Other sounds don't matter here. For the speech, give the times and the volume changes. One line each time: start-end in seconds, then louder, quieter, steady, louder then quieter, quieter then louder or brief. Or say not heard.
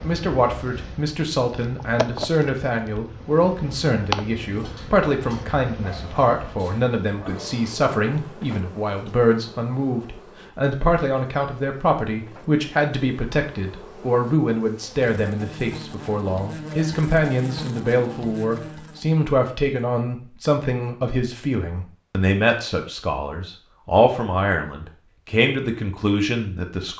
0.0-26.9 steady.